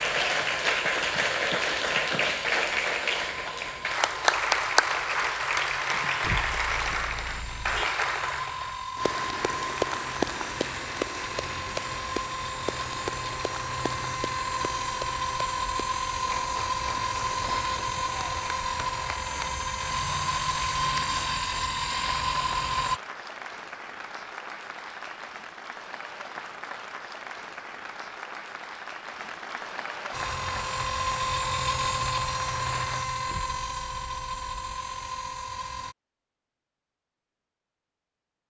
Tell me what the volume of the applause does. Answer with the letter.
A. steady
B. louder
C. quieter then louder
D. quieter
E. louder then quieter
D.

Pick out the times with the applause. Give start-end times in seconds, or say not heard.
0.0-33.0.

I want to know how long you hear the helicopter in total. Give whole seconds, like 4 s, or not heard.
29 s.